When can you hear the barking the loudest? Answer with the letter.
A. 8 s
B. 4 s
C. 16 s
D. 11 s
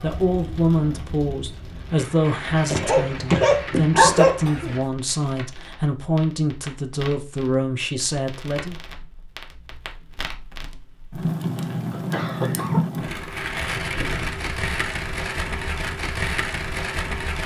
B.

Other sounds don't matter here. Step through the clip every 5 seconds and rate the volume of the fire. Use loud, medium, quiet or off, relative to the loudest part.
medium, quiet, loud, loud.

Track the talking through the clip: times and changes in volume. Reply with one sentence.
You can hear the talking from 0.0 to 8.8 s, at a steady volume.